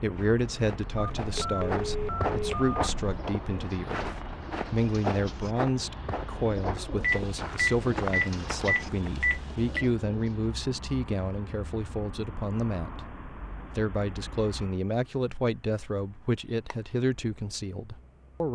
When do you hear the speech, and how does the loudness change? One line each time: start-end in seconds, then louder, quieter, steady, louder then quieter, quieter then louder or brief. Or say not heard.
0.0-18.5 steady.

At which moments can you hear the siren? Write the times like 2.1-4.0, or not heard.
not heard.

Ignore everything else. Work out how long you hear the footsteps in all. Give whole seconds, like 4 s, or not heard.
9 s.